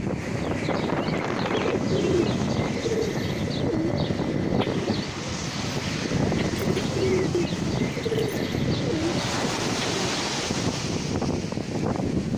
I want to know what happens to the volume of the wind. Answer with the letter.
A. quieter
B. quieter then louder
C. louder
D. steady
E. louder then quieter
D.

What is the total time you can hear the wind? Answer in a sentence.
You can hear the wind for 12 seconds altogether.